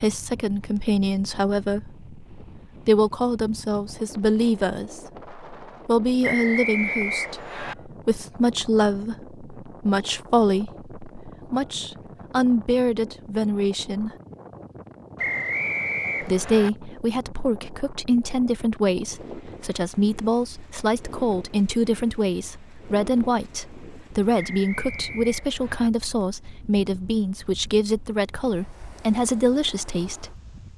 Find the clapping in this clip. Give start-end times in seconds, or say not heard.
not heard.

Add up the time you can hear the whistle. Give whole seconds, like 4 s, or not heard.
5 s.